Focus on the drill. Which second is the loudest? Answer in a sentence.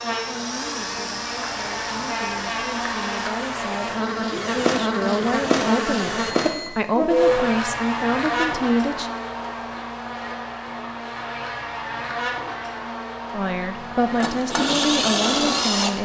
The loudest moment of the drill is at 15 seconds.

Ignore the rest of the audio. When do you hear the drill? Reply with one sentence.
The drill can be heard from 0.0 to 6.3 s and from 13.8 to 16.0 s.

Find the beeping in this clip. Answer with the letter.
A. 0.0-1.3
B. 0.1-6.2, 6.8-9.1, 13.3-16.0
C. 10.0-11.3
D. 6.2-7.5
D.